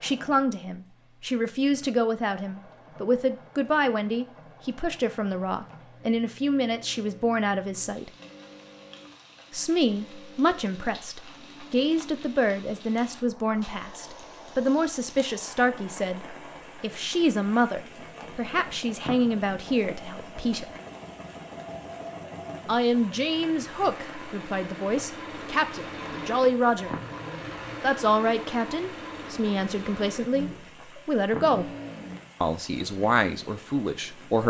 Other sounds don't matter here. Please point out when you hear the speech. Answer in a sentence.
The speech can be heard from 0.0 to 8.1 s, from 9.5 to 20.7 s, from 22.6 to 26.9 s, from 27.8 to 31.7 s and from 32.4 to 34.4 s.